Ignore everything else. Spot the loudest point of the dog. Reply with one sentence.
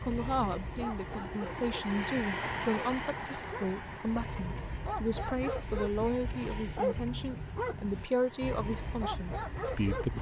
The volume of the dog peaks at 7 seconds.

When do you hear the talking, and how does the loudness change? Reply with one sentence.
The talking can be heard from 0.0 to 10.1 s, at a steady volume.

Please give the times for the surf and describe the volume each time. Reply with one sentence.
You can't hear the surf here.